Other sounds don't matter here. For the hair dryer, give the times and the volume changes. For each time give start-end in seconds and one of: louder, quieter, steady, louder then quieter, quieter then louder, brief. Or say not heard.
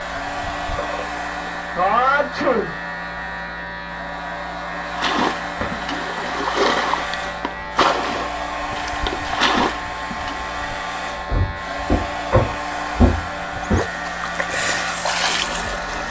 0.0-16.0 steady.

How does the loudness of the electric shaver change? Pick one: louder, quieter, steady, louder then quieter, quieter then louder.
steady.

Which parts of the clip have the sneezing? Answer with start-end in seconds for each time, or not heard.
1.8-2.8.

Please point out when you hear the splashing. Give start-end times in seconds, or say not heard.
4.8-10.5, 13.6-16.0.